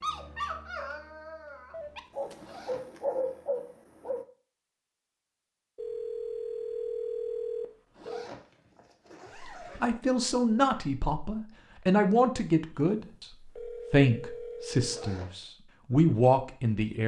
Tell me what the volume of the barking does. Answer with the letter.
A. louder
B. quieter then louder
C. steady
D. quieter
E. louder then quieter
B.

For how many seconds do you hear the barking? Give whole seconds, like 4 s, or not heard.
4 s.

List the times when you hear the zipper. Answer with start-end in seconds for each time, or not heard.
2.4-3.0, 8.0-9.9, 14.8-15.5.